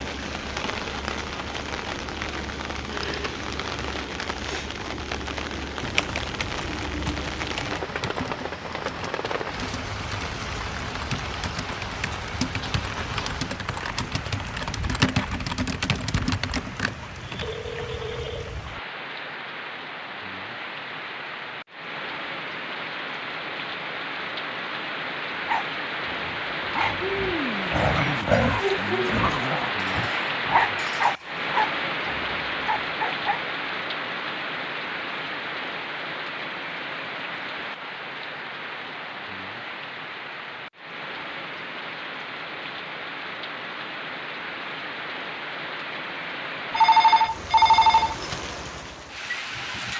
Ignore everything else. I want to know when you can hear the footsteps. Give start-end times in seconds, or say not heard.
not heard.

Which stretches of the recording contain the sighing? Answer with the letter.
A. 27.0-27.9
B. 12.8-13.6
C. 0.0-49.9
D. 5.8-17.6
A.